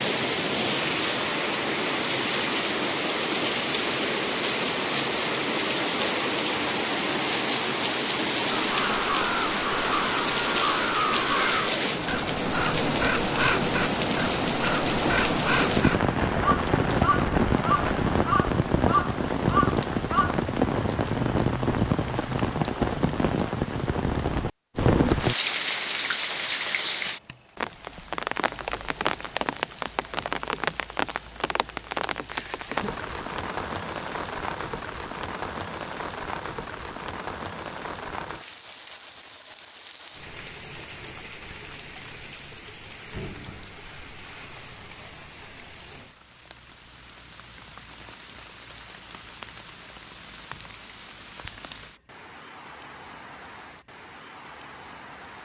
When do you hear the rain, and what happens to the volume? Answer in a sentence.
You can hear the rain from 0.0 to 55.4 s, getting quieter.